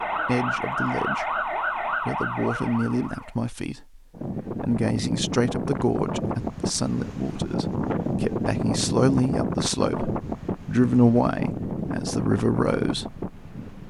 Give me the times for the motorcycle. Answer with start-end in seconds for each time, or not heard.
not heard.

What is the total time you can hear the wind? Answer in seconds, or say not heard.
10 s.